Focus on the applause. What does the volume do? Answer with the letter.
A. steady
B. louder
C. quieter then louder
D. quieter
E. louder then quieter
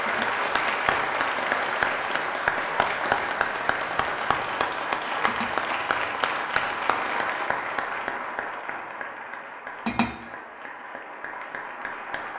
D.